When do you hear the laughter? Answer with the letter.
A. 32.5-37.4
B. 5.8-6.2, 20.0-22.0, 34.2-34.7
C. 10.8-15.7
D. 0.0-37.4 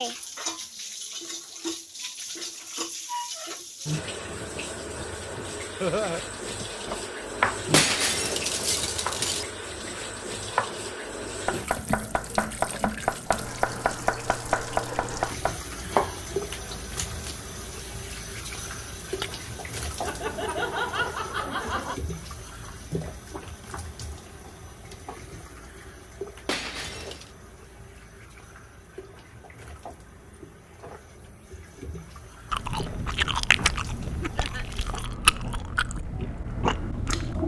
B.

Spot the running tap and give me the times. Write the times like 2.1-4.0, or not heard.
0.0-37.4.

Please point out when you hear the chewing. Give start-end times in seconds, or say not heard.
32.5-37.4.